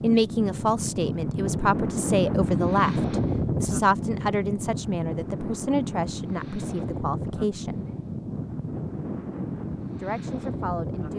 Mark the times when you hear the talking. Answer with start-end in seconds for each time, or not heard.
0.0-7.8, 9.9-11.1.